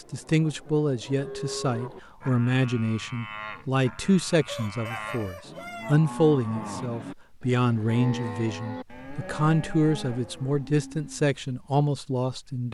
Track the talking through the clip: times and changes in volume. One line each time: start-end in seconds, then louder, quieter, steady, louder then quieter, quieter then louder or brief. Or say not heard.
0.0-12.6 steady.